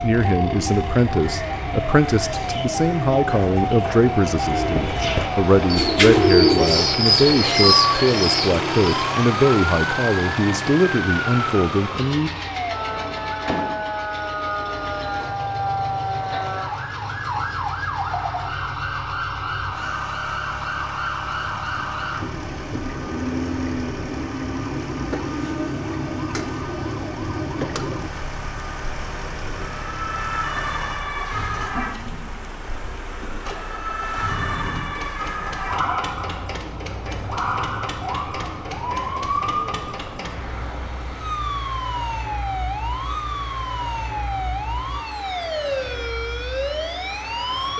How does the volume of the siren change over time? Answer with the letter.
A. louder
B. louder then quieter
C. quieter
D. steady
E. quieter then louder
D.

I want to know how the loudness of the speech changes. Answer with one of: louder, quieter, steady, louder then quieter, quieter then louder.
steady.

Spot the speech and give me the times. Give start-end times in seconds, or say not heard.
0.0-12.3.